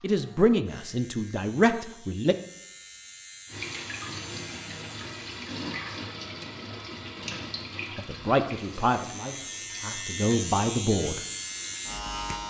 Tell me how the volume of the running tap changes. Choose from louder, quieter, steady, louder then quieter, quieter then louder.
quieter.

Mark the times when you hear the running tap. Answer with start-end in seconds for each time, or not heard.
3.5-12.4.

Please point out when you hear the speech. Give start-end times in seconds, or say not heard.
0.0-2.4, 8.0-11.2.